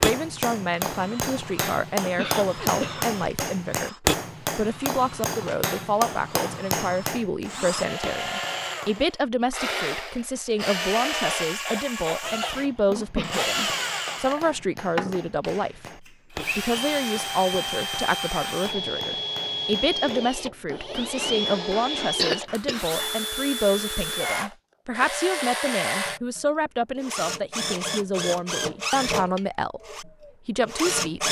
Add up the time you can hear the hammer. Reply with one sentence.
You can hear the hammer for 20 seconds altogether.